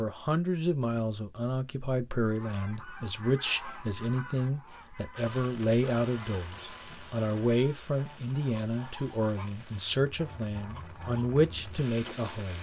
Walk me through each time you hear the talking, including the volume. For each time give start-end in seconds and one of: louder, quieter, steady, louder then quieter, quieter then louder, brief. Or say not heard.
0.0-12.5 steady.